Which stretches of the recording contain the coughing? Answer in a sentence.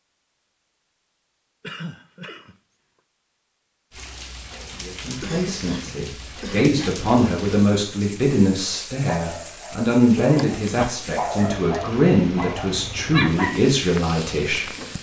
The coughing can be heard from 1.6 to 2.5 s, from 5.2 to 7.0 s and from 10.2 to 11.1 s.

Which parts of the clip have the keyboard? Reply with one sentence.
The keyboard can't be heard in this clip.